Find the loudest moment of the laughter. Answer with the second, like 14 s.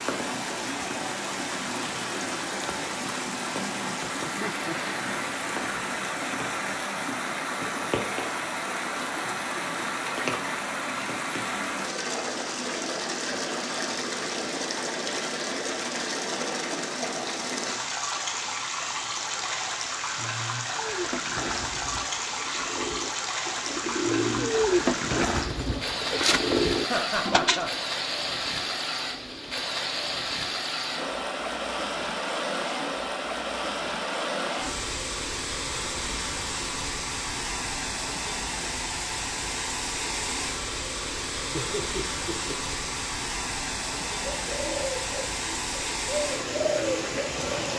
27 s.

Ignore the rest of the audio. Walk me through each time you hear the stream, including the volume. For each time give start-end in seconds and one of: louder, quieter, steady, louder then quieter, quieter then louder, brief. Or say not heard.
0.0-47.7 steady.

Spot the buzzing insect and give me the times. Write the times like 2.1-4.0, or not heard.
not heard.